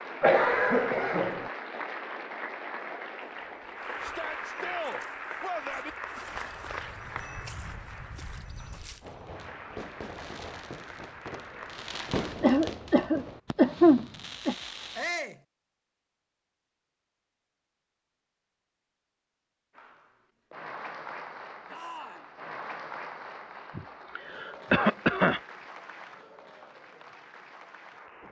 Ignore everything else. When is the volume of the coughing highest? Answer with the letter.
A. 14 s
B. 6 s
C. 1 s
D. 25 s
A.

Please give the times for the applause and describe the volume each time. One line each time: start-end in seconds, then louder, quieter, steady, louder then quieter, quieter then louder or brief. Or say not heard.
0.0-12.3 quieter
19.8-28.2 quieter.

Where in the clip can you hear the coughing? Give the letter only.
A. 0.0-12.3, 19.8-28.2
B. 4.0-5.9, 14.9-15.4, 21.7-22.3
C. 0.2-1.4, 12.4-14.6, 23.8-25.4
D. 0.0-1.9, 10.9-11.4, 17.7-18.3
C.